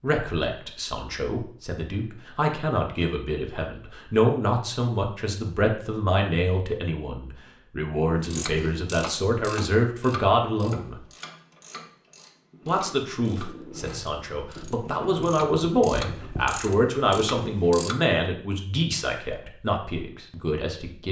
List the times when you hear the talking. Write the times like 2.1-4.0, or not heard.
0.0-11.0, 12.7-21.0.